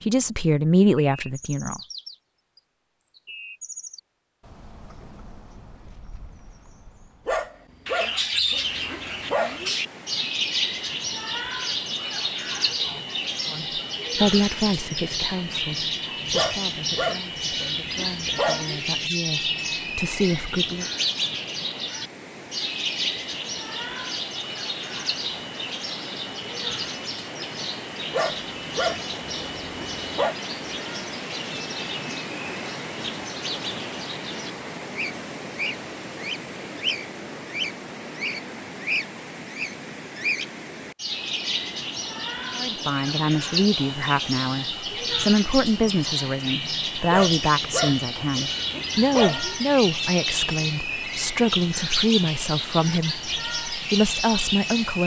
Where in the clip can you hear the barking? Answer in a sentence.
You can hear the barking from 7.2 to 9.8 s, from 16.3 to 18.8 s, from 28.1 to 30.4 s and from 47.1 to 49.6 s.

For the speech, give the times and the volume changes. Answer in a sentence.
The speech can be heard briefly from 0.1 to 1.8 s; from 13.5 to 20.9 s, getting quieter then louder; and from 42.5 to 55.0 s, at a steady volume.